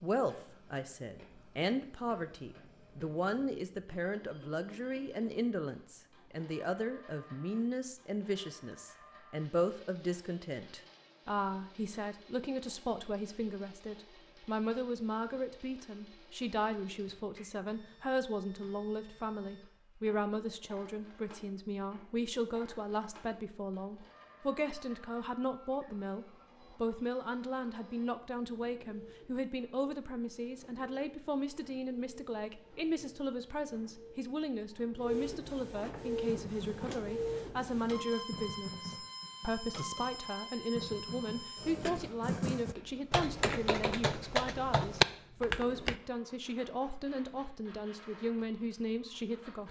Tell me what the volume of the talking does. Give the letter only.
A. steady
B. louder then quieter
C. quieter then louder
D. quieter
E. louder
A.